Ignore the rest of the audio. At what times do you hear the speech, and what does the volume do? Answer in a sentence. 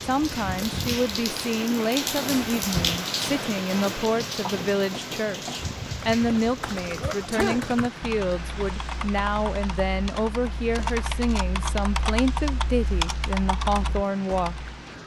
You can hear the speech from 0.0 to 14.7 s, at a steady volume.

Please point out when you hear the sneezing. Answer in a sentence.
You can hear the sneezing from 7.0 to 7.7 s.